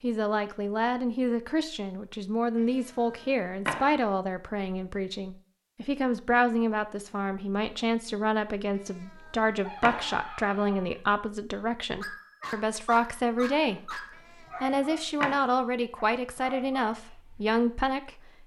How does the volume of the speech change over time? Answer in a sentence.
The loudness of the speech stays about the same.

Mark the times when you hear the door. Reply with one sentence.
The door can't be heard in this clip.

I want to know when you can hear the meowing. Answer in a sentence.
You can hear the meowing from 2.9 to 4.0 s, from 8.8 to 10.2 s and from 14.4 to 15.4 s.